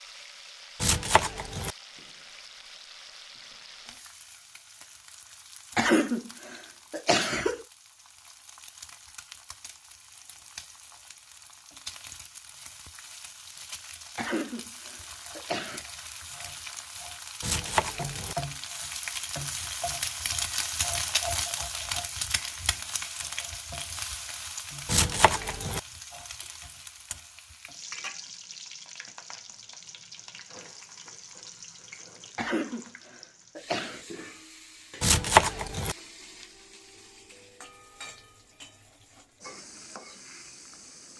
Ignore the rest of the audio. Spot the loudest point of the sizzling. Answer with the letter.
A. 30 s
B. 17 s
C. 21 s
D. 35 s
C.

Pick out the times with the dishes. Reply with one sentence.
The dishes can't be heard in this clip.